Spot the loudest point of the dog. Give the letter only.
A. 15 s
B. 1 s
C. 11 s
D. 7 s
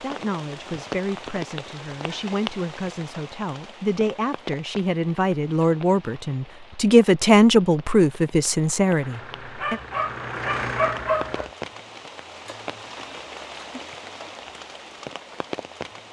C.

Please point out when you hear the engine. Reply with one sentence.
The engine can be heard from 9.0 to 11.4 s.